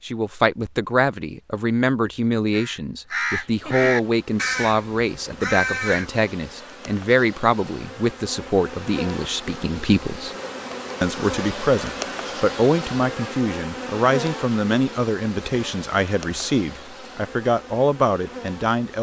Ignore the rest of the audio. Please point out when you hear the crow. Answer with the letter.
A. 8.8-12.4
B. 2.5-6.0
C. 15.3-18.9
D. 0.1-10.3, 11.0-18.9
B.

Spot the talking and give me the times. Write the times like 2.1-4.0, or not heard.
0.1-10.3, 11.0-18.9.